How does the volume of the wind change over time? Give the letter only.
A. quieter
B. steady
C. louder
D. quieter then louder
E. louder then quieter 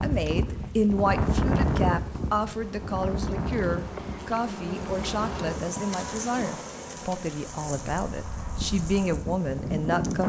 D.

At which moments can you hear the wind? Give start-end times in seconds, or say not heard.
0.0-10.2.